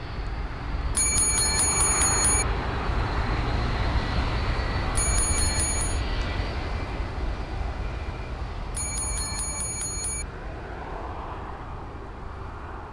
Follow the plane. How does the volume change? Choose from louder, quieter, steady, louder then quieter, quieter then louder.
quieter.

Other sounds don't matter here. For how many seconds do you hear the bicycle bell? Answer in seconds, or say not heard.
4 s.